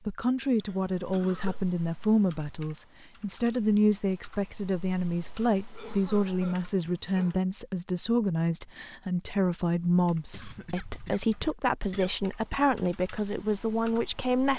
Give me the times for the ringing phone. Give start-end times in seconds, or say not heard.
not heard.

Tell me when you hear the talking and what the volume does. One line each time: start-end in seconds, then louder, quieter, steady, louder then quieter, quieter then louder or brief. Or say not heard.
0.1-14.5 steady.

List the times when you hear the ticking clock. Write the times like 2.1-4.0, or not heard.
not heard.